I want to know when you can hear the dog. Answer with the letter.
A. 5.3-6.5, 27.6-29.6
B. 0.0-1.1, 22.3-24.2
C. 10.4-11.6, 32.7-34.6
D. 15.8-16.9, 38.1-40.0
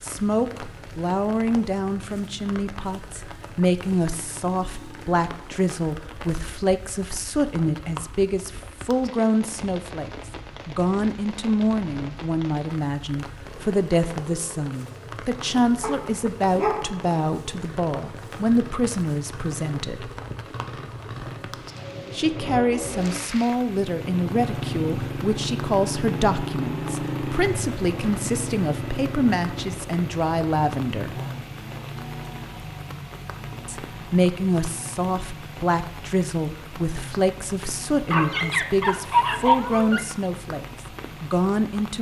D.